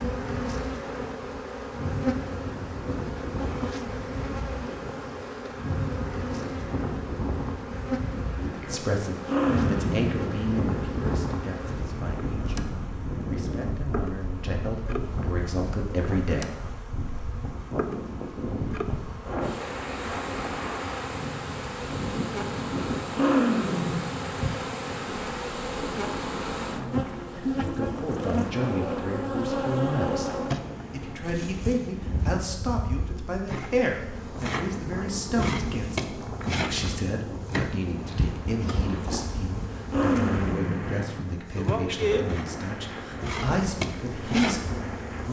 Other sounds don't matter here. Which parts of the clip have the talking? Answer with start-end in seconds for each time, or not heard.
8.3-16.5, 27.6-45.2.